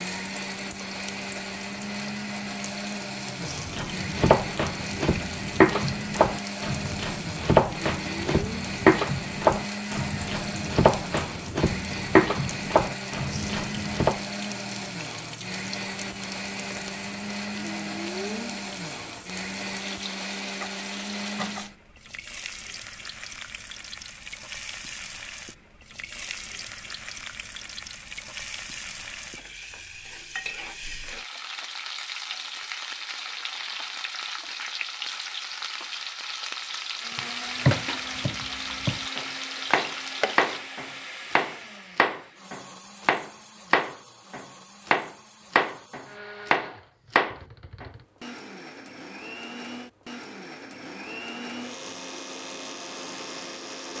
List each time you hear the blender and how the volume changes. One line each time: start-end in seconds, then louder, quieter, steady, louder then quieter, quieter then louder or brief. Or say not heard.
0.0-21.8 steady
37.0-53.9 quieter then louder.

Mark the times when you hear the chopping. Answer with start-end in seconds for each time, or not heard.
3.4-14.2, 37.1-47.9.